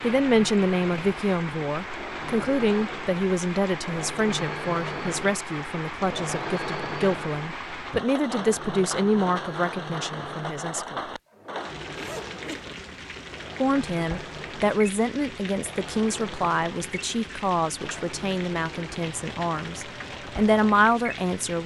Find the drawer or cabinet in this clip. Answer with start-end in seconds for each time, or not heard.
not heard.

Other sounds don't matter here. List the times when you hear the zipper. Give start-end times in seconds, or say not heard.
11.9-12.8.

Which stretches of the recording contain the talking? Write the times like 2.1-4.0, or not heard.
0.0-11.1, 13.6-21.6.